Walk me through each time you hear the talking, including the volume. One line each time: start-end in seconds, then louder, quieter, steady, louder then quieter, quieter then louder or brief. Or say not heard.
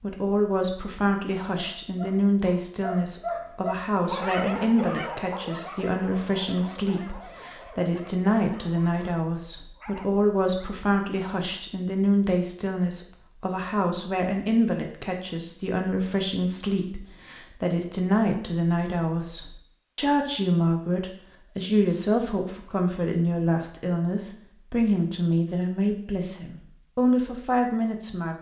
0.0-28.3 steady.